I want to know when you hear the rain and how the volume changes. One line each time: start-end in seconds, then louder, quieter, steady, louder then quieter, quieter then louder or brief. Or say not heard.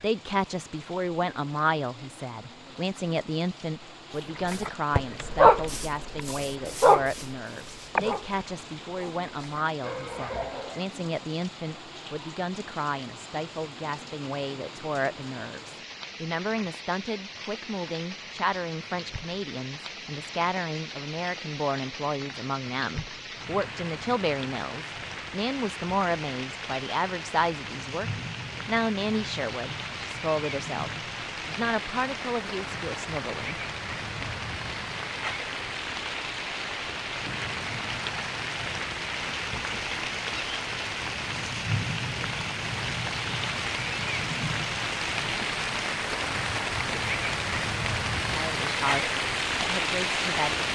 0.0-50.6 louder.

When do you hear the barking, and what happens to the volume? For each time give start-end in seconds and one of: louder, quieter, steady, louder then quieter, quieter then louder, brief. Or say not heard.
4.3-10.8 quieter then louder.